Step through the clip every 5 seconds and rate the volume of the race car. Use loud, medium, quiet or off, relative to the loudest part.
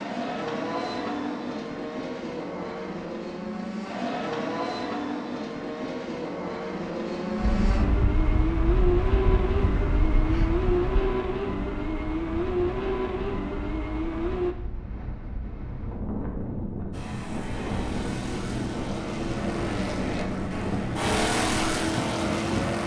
loud, loud, loud, medium, loud.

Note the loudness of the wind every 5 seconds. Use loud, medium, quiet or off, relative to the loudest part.
off, loud, medium, loud, loud.